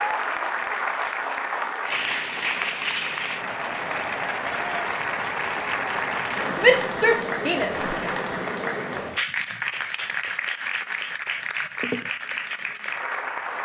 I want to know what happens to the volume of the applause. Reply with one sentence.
The loudness of the applause stays about the same.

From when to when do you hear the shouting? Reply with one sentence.
The shouting can be heard from 6.5 to 8.0 s.